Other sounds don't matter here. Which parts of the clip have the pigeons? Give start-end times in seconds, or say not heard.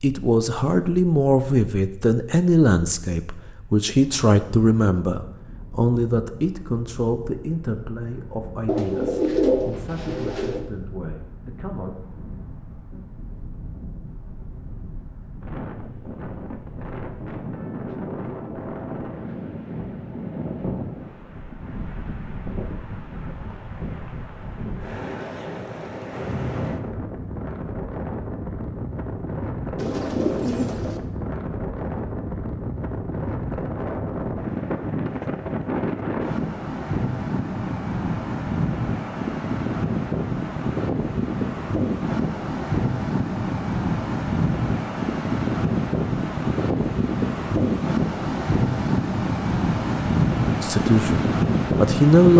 8.7-10.7, 29.8-31.0.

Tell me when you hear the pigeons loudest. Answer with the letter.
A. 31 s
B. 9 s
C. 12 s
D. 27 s
B.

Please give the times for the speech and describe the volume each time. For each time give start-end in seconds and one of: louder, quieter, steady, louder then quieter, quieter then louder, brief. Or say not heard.
0.0-11.9 quieter
50.6-52.3 brief.